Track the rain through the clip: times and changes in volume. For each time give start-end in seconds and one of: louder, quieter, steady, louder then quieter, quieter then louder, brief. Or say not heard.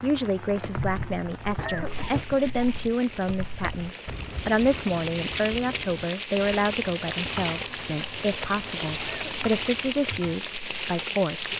0.0-11.5 louder.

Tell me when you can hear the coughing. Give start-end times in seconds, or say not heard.
1.6-2.3, 9.0-9.7.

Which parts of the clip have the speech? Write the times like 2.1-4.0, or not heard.
0.0-11.5.